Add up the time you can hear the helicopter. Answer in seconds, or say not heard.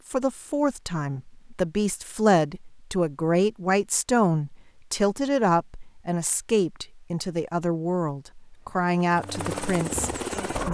2 s.